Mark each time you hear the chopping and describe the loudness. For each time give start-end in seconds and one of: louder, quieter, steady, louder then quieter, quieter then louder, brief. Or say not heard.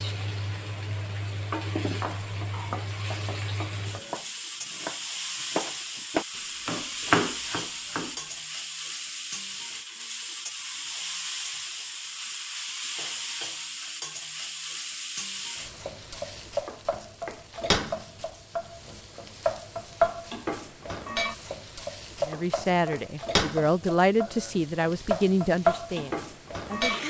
1.9-8.2 louder.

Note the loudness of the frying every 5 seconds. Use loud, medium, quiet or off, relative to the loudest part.
medium, medium, medium, medium, loud, loud.